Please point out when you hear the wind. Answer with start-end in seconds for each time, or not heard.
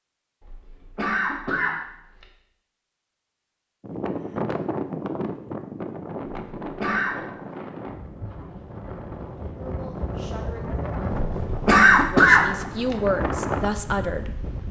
3.8-14.6.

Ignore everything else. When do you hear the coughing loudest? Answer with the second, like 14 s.
12 s.